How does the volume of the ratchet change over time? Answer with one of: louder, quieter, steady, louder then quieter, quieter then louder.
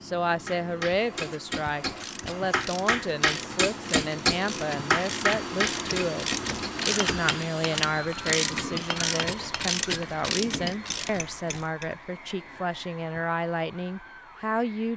louder.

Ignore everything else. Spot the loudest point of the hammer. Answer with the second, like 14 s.
4 s.